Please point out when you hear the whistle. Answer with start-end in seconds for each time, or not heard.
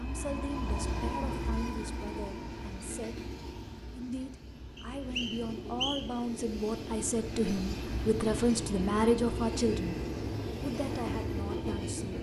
4.8-6.2.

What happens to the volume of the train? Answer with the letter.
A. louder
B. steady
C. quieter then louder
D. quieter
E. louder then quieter
C.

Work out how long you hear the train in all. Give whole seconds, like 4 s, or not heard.
12 s.